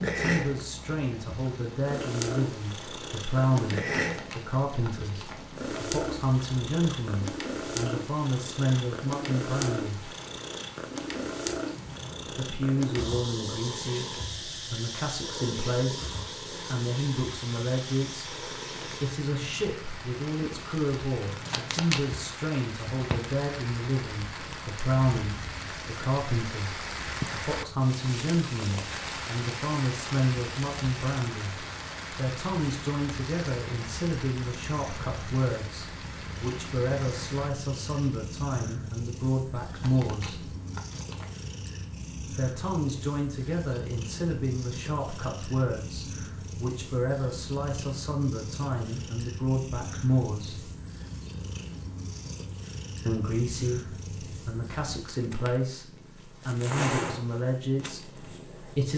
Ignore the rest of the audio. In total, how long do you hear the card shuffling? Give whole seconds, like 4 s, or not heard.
4 s.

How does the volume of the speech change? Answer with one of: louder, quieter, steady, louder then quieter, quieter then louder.
steady.